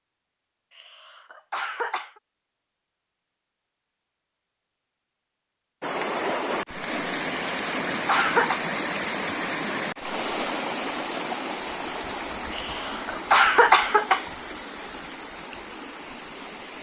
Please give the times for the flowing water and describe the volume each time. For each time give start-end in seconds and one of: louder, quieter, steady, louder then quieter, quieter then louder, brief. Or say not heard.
5.8-16.7 quieter.